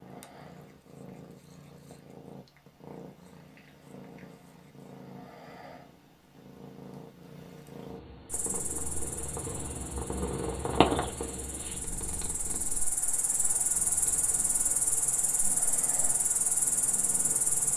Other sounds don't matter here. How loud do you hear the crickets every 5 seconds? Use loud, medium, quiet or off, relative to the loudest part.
off, medium, loud, loud.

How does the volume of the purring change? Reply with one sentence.
The volume of the purring goes up, then down.